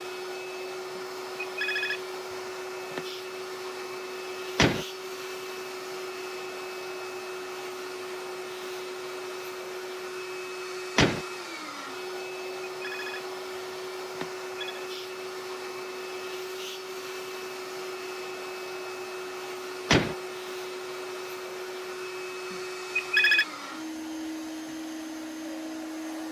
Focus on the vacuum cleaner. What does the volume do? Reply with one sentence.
The volume of the vacuum cleaner stays about the same.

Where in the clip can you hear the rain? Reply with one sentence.
You can't hear the rain here.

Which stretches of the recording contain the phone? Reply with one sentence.
The phone can be heard from 0.9 to 3.0 s, from 12.7 to 13.2 s, from 14.1 to 14.8 s and from 22.5 to 23.4 s.